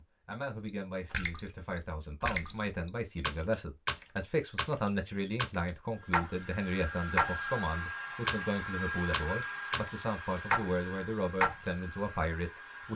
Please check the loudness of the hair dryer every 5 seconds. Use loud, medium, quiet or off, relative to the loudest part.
off, loud, medium.